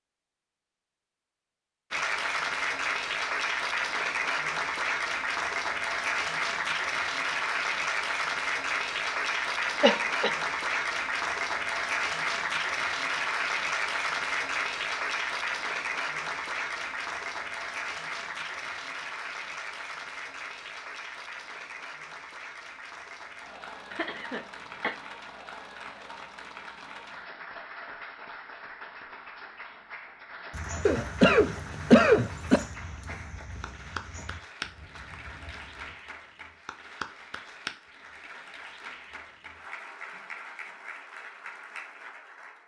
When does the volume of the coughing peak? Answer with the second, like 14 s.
32 s.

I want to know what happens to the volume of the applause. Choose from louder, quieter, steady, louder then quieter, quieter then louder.
quieter.